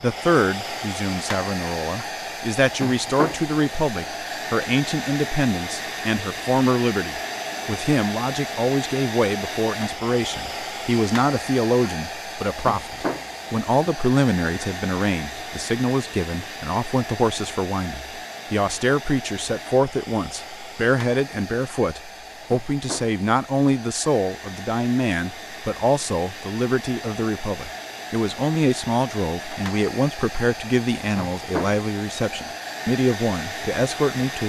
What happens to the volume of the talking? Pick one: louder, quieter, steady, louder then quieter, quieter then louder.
steady.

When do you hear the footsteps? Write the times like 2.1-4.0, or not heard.
not heard.